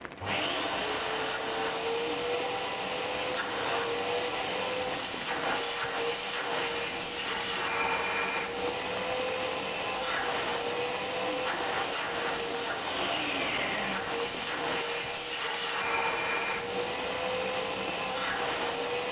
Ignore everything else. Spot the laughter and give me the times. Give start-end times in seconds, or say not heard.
not heard.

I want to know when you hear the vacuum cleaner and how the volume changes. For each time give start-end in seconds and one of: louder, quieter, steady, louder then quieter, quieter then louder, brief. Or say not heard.
0.1-19.0 steady.